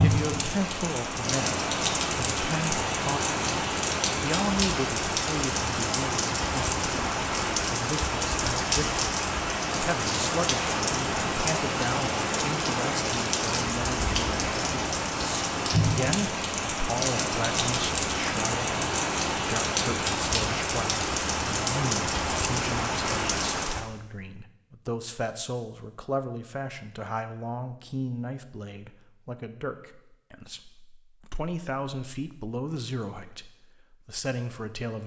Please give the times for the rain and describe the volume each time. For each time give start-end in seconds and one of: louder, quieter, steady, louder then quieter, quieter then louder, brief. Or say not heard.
0.0-23.9 steady.